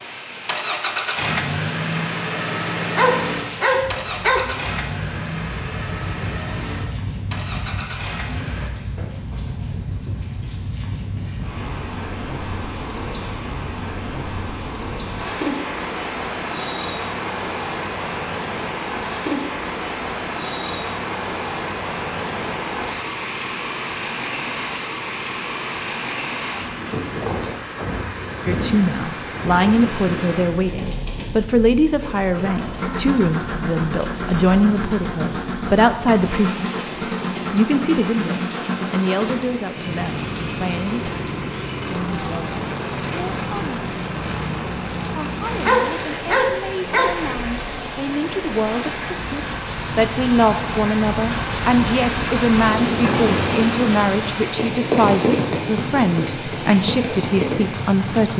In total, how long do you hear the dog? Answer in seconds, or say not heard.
3 s.